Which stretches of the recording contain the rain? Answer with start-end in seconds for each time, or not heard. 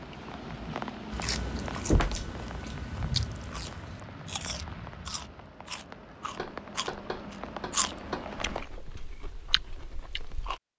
0.0-8.7.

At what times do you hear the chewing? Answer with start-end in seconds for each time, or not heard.
1.1-10.6.